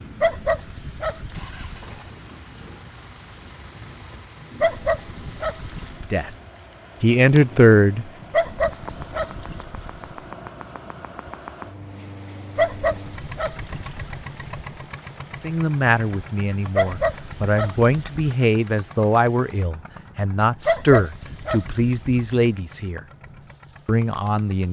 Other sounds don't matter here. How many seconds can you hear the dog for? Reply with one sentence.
You can hear the dog for 11 seconds altogether.